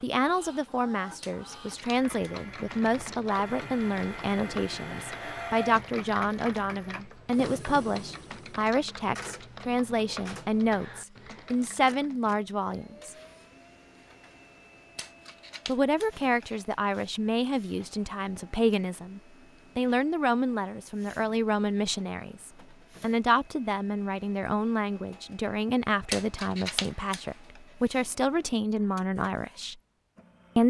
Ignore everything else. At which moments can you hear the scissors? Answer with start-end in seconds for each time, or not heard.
1.2-2.3, 14.9-16.6, 26.1-27.2.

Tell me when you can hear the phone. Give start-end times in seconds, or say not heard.
not heard.